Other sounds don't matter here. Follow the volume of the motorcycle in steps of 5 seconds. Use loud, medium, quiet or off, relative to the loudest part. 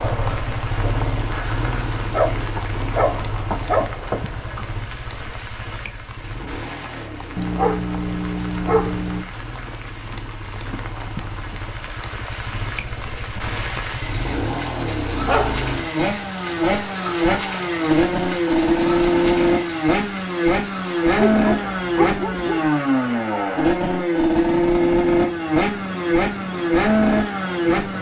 medium, quiet, quiet, loud, loud, loud.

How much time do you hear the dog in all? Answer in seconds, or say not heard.
7 s.